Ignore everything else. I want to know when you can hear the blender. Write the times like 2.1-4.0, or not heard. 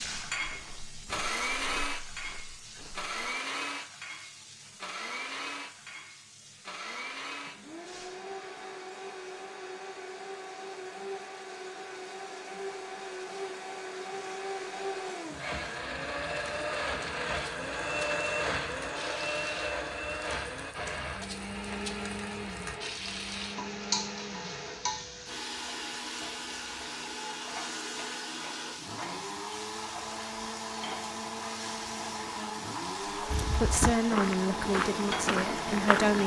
0.0-36.2.